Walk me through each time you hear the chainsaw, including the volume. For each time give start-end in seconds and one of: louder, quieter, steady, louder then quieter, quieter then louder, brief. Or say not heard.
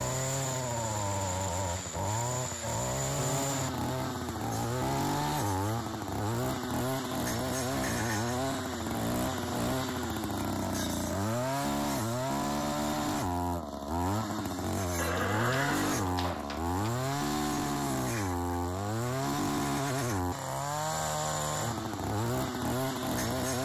0.0-23.6 steady.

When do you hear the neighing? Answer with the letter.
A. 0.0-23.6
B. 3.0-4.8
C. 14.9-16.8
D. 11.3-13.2
C.